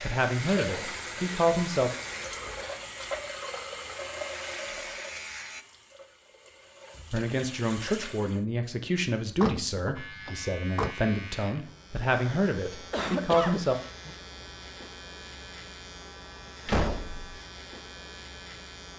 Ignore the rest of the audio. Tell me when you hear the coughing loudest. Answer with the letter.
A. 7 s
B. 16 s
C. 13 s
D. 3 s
C.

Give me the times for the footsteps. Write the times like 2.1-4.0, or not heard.
not heard.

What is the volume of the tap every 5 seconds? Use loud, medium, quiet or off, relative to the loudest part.
loud, medium, off, off.